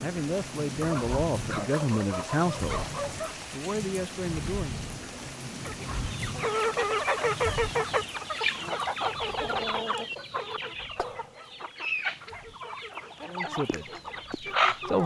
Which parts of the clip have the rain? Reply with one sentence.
The rain can be heard from 0.0 to 15.0 s.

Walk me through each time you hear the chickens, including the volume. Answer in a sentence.
You can hear the chickens from 5.7 to 15.0 s, getting quieter.